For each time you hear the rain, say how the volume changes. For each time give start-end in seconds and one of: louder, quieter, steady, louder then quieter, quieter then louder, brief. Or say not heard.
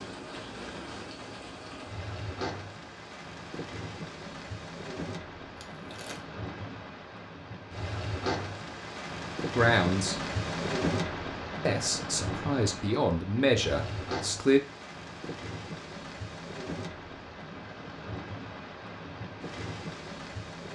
0.0-20.6 louder then quieter.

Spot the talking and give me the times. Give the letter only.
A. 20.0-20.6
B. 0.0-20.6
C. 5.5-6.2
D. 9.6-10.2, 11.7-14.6
D.